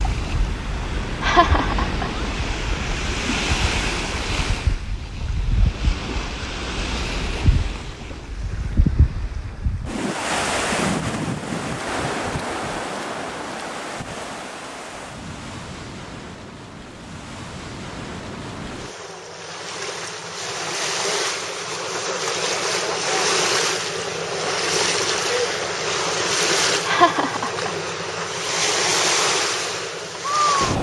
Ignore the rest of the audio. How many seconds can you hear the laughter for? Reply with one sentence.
You can hear the laughter for 2 seconds altogether.